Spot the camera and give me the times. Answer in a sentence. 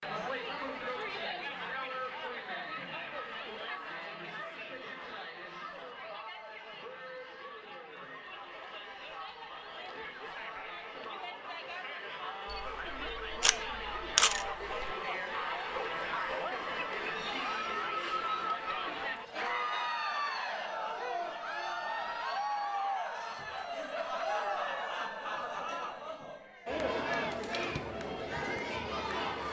You can hear the camera from 12.5 to 14.9 s.